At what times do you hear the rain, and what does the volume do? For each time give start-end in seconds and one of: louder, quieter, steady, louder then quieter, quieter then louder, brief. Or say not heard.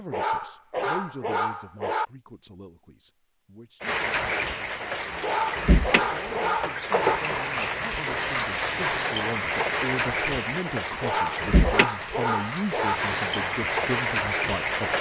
3.8-14.9 steady.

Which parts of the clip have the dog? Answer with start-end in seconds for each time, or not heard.
0.1-2.0, 5.2-7.2, 11.0-13.0.